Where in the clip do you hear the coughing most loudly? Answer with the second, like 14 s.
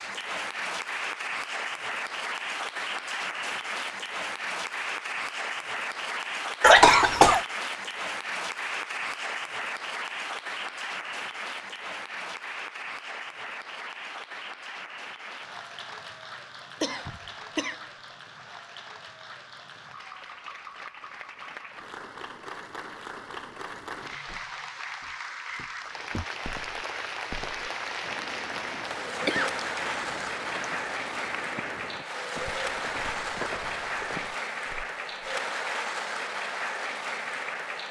7 s.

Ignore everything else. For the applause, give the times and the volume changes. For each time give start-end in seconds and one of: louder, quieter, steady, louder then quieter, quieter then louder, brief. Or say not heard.
0.0-37.8 quieter then louder.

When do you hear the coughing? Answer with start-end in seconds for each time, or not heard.
6.6-7.4, 16.8-17.8, 29.2-30.8.